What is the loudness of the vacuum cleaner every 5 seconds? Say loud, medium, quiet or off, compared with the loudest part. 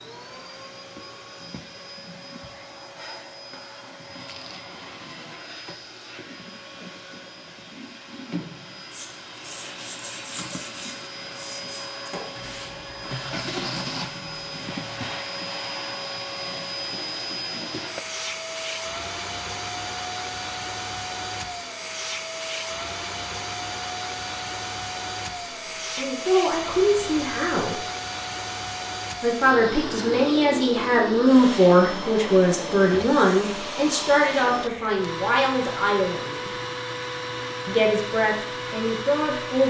medium, medium, loud, loud, loud, loud, loud, loud.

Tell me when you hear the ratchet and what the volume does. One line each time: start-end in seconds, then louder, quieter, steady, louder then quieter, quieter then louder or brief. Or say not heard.
not heard.